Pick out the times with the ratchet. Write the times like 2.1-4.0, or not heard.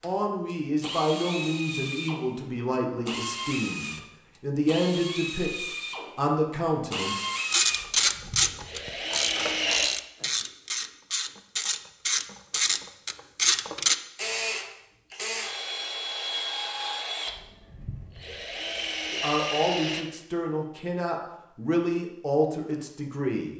7.5-13.9.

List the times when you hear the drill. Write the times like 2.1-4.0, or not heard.
0.0-9.9, 14.2-20.1.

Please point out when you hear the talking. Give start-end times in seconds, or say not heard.
0.0-7.2, 19.1-23.5.